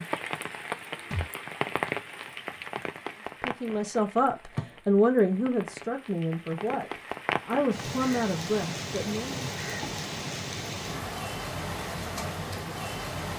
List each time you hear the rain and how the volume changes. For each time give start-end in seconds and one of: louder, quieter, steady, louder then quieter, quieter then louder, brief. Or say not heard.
0.0-13.3 quieter then louder.